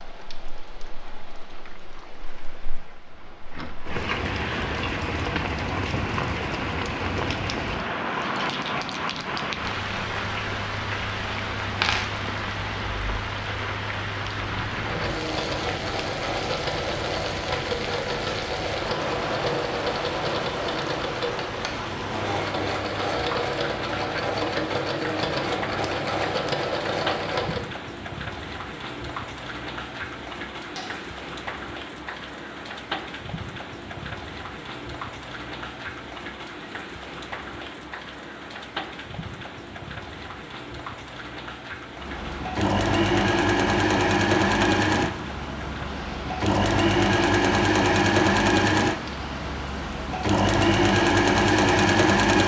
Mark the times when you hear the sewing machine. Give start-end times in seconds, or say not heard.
14.8-27.7, 42.0-52.4.